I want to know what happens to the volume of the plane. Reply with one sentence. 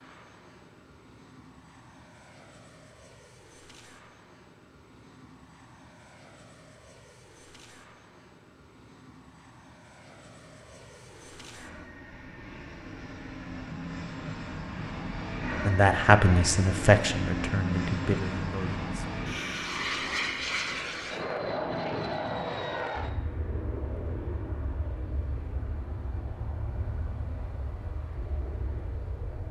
The loudness of the plane goes up, then down.